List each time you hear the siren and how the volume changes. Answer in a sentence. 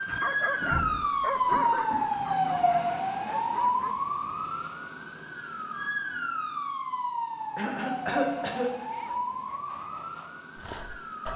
The siren can be heard from 0.0 to 11.3 s, getting quieter.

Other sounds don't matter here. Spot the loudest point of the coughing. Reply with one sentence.
The loudest moment of the coughing is at 8 seconds.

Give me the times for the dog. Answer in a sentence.
You can hear the dog from 0.0 to 4.0 s and from 8.9 to 11.3 s.